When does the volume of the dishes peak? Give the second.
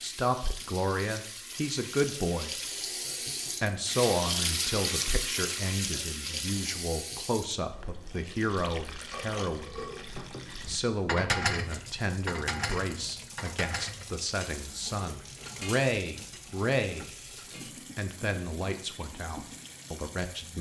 11 s.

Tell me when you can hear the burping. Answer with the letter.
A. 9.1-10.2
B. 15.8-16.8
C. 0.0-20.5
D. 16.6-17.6
A.